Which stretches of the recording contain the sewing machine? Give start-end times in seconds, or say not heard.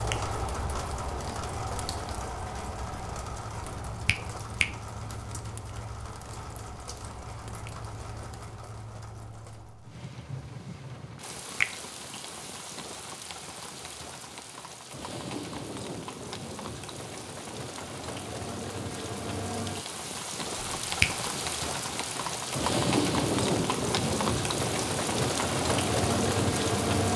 not heard.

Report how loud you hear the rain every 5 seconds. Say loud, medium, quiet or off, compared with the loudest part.
medium, quiet, quiet, medium, loud, loud.